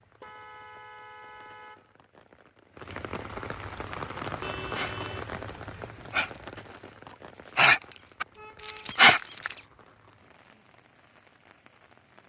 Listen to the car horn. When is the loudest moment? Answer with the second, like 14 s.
5 s.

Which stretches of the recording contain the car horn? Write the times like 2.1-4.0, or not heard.
0.2-1.9, 4.2-6.2, 8.3-8.9.